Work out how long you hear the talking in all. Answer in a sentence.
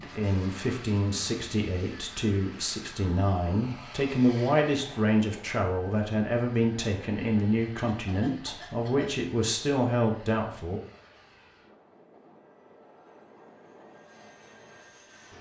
The talking can be heard for 11 seconds in total.